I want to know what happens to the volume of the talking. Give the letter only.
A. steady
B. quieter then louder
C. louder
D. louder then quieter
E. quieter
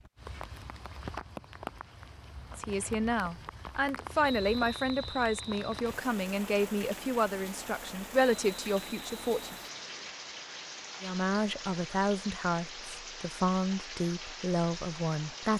A.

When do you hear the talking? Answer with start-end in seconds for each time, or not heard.
2.5-9.6, 11.0-15.5.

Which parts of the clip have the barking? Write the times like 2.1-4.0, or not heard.
not heard.